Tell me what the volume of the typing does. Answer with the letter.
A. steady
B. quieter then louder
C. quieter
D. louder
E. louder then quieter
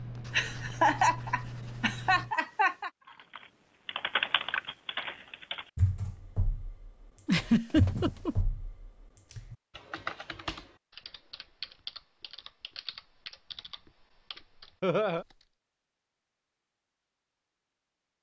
C.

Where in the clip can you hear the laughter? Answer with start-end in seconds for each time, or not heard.
0.3-2.9, 7.2-8.3, 14.8-15.2.